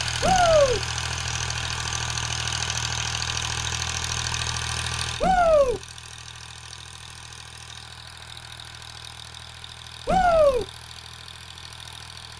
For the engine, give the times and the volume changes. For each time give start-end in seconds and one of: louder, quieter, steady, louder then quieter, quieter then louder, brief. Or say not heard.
0.0-12.3 quieter.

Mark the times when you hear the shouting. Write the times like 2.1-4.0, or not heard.
0.2-0.8, 5.2-5.8, 10.1-10.7.